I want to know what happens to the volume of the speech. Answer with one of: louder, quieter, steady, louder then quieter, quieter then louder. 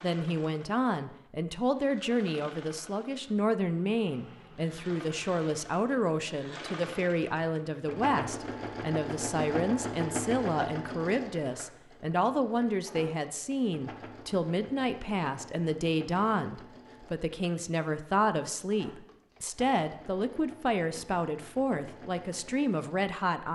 steady.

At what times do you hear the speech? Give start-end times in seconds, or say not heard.
0.0-23.5.